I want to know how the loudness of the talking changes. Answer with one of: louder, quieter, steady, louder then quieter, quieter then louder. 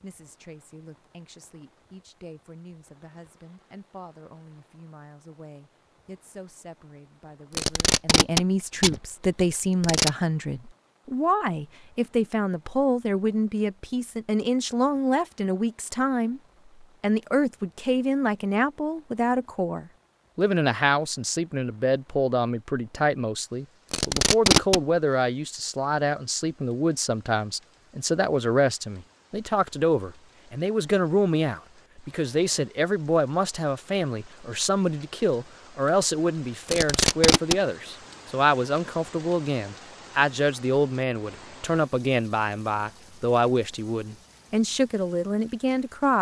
louder.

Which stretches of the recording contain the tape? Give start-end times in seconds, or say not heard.
7.5-10.1, 23.9-24.8, 36.6-37.5.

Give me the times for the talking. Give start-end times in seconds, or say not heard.
0.0-46.1.